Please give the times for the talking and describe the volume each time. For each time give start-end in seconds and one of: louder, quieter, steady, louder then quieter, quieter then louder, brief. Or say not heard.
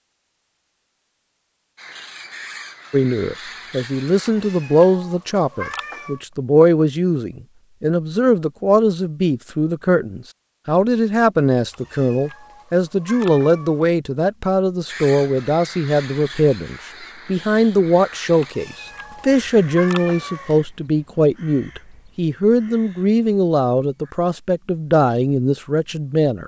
2.9-26.4 steady.